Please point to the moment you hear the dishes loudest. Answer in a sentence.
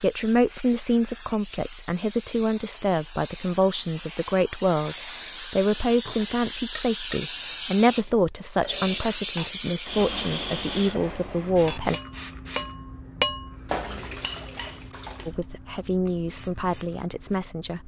The volume of the dishes peaks at 13 seconds.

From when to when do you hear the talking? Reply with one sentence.
You can hear the talking from 0.0 to 11.9 s and from 15.2 to 17.8 s.